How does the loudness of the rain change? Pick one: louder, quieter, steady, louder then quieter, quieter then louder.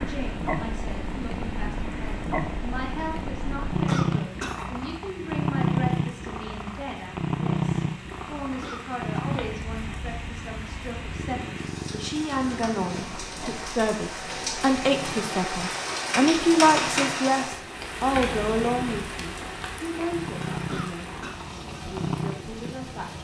louder then quieter.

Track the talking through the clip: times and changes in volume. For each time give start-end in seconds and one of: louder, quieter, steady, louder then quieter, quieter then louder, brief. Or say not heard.
0.0-23.2 louder then quieter.